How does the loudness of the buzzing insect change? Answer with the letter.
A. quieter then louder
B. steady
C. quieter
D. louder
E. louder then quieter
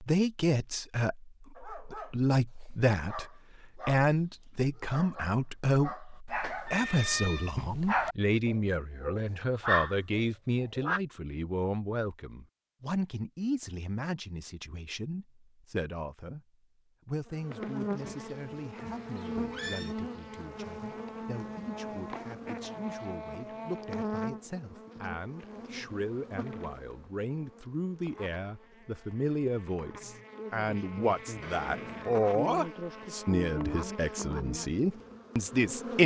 A.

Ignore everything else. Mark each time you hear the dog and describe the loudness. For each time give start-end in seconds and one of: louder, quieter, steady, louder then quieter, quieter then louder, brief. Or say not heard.
1.6-11.0 louder.